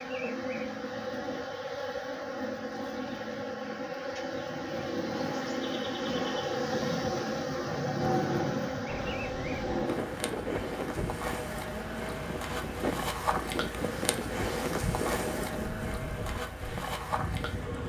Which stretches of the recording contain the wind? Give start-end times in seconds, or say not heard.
8.8-17.8.